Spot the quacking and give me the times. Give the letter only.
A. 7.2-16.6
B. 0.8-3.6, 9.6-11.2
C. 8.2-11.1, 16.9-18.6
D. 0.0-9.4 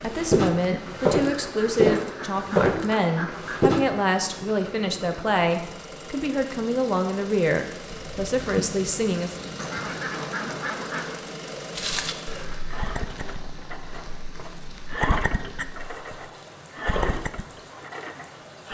B.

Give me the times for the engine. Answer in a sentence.
You can hear the engine from 0.0 to 18.6 s.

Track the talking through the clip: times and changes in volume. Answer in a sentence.
The talking can be heard from 0.0 to 9.4 s, at a steady volume.